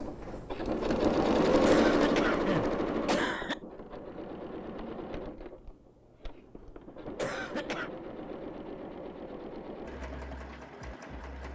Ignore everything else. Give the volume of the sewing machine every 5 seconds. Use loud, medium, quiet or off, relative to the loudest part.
loud, quiet, quiet.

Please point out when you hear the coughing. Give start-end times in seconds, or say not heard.
1.6-3.6, 7.2-7.9.